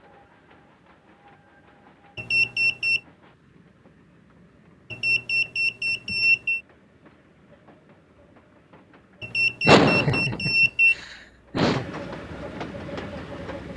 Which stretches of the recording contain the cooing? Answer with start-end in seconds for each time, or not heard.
not heard.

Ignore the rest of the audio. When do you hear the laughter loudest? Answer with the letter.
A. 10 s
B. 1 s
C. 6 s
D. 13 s
A.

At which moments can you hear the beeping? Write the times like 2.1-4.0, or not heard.
2.1-3.0, 4.9-6.6, 9.2-10.9.